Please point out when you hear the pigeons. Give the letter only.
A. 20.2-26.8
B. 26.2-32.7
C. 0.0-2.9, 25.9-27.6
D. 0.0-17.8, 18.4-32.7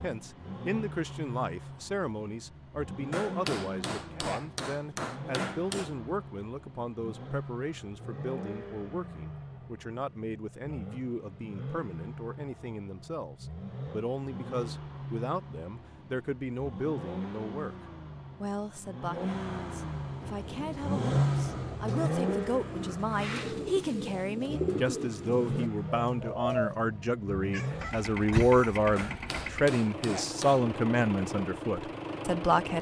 A.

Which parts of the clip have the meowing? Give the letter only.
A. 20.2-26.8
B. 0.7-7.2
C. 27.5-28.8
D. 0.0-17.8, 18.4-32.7
C.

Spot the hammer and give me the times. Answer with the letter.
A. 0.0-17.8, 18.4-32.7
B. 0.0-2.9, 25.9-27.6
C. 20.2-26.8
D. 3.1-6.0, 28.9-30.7
D.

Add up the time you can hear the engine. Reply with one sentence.
The engine can be heard for 33 seconds in total.